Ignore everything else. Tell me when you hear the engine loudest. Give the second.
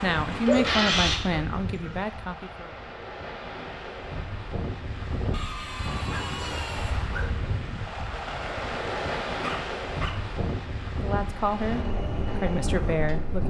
1 s.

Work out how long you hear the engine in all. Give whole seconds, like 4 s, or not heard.
4 s.